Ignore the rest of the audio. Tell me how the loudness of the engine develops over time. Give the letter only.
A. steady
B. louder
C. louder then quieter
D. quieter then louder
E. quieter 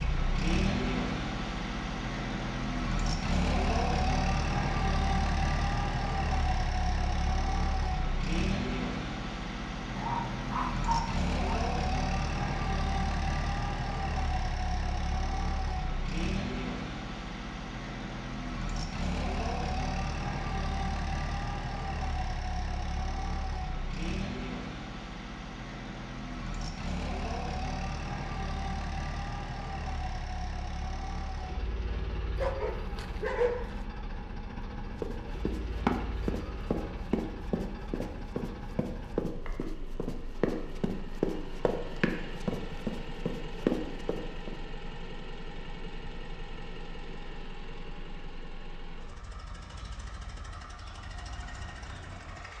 E.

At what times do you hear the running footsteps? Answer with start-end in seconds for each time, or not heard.
35.0-44.5.